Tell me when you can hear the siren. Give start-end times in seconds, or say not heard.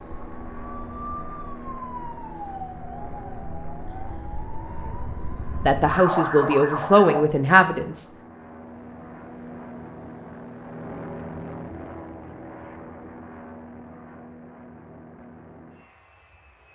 0.0-7.2.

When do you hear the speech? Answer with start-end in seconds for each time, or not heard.
5.7-8.1.